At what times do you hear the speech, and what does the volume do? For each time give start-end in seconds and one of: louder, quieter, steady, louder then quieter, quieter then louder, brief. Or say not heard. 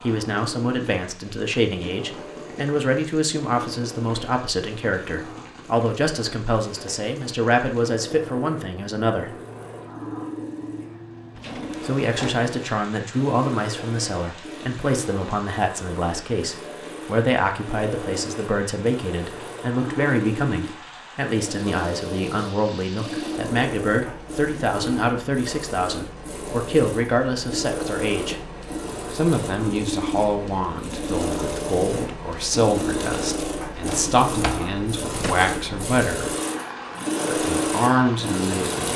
0.0-9.3 steady
11.8-28.4 steady
29.1-36.3 steady
37.3-38.9 brief.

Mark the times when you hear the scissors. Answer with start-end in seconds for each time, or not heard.
not heard.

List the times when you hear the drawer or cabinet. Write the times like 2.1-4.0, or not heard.
11.3-12.4, 33.1-35.4.